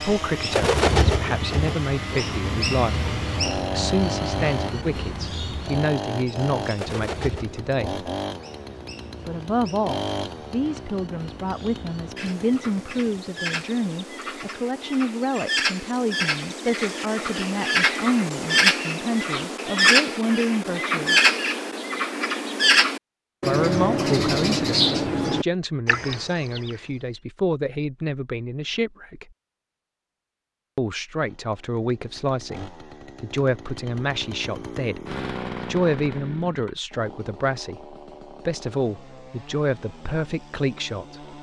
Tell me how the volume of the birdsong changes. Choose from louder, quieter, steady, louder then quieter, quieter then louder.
quieter then louder.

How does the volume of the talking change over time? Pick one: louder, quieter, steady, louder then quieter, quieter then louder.
steady.